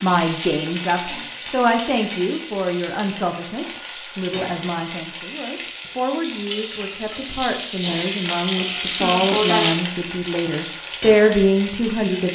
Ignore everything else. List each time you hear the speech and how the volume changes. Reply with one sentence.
The speech can be heard from 0.0 to 12.3 s, getting quieter then louder.